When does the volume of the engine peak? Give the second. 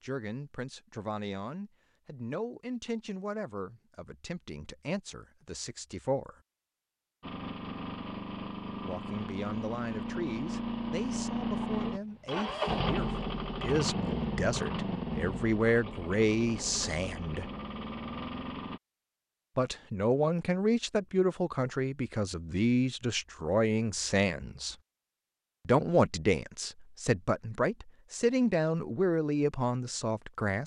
13 s.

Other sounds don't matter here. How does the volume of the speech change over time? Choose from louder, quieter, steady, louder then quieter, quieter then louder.
louder.